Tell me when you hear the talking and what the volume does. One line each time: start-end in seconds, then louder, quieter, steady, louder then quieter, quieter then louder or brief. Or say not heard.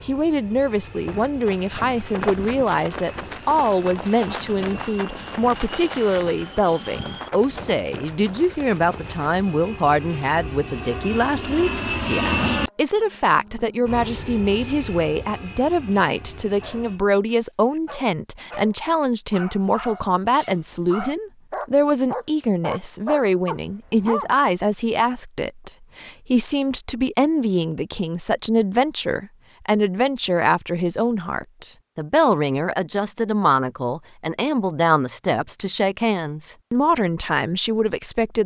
0.0-38.4 steady.